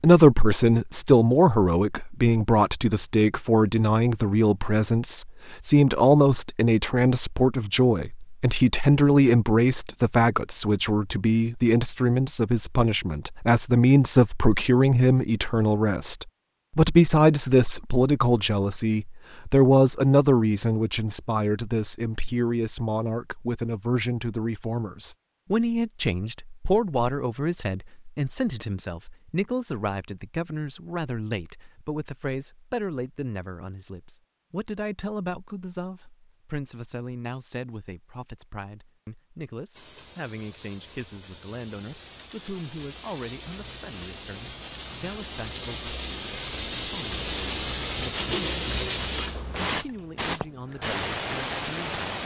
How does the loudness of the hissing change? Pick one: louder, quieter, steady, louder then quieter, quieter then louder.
louder.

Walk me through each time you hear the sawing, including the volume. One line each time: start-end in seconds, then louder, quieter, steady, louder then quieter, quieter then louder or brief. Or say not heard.
not heard.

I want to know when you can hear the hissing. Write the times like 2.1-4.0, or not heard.
39.7-52.2.